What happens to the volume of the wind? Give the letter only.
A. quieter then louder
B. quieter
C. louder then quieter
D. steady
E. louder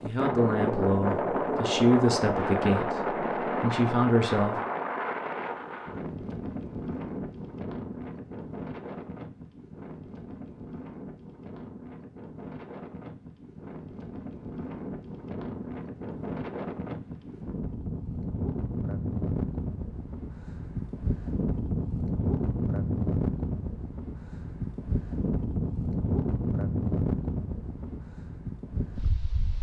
A.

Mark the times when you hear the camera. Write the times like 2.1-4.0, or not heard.
not heard.